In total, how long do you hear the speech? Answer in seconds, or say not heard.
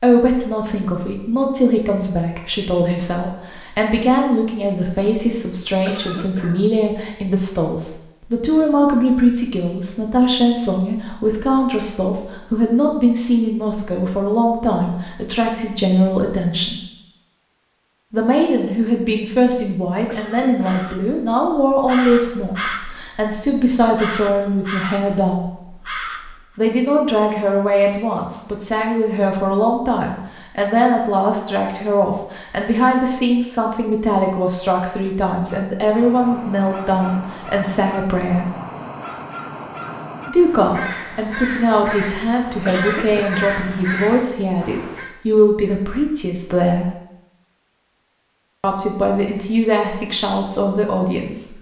46 s.